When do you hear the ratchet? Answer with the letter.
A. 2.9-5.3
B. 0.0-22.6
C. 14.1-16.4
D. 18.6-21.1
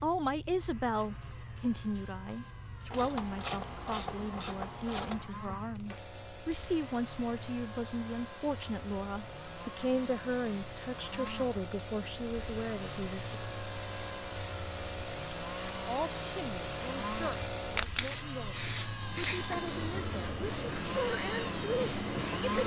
A.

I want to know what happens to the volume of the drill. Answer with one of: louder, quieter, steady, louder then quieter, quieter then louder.
louder.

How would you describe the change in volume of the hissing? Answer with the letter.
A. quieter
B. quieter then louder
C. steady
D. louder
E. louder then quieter
D.